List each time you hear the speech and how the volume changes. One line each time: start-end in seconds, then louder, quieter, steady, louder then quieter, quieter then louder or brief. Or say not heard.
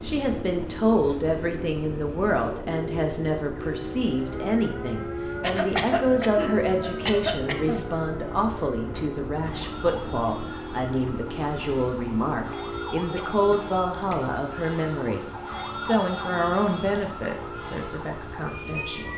0.0-19.1 steady.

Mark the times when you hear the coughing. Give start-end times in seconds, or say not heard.
5.4-7.8, 13.2-14.3.